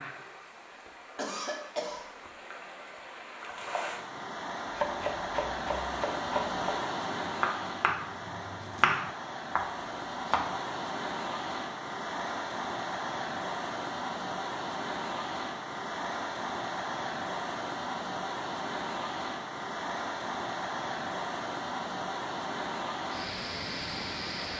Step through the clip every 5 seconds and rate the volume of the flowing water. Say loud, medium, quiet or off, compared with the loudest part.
medium, loud, loud, loud, loud.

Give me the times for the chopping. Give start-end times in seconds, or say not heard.
4.7-10.7.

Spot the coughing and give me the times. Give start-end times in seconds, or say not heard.
1.1-2.0.